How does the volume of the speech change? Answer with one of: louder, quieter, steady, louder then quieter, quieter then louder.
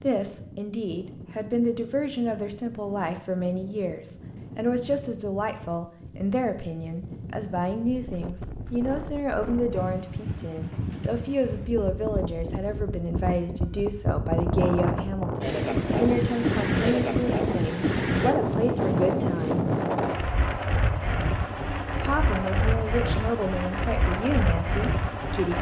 steady.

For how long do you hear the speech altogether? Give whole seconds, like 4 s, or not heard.
23 s.